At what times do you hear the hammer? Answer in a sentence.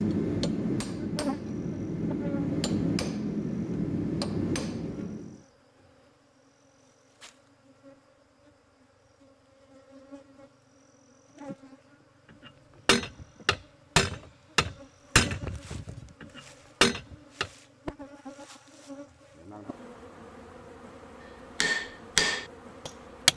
The hammer can be heard from 0.0 to 5.3 s, from 12.4 to 17.5 s and from 21.6 to 23.3 s.